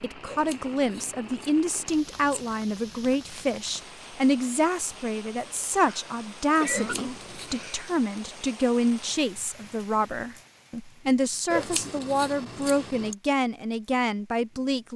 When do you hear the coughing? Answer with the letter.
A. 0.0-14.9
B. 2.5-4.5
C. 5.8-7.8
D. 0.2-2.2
C.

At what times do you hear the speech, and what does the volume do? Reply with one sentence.
The speech can be heard from 0.0 to 14.9 s, at a steady volume.